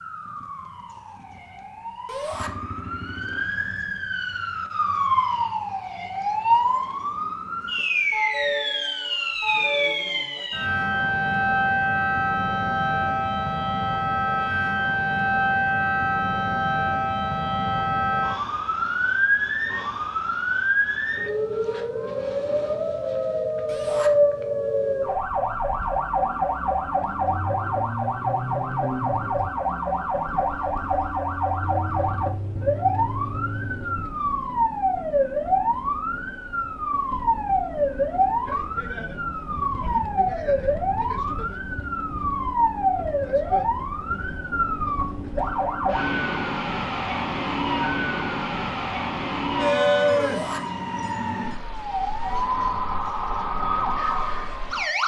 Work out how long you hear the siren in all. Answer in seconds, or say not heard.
55 s.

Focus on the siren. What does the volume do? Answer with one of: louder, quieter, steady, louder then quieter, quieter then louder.
steady.